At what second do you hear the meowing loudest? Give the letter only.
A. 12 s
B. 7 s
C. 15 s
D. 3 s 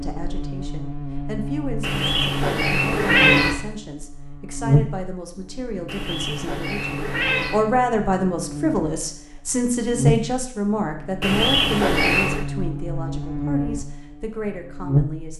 D.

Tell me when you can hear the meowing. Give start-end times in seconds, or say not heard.
1.8-3.5, 5.8-7.6, 11.2-12.4.